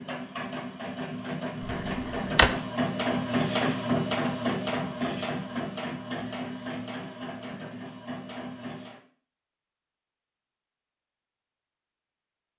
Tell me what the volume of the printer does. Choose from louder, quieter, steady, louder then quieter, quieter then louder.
louder then quieter.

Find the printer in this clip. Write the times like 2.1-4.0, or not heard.
0.0-9.0.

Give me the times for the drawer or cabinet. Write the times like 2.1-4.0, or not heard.
1.6-2.5.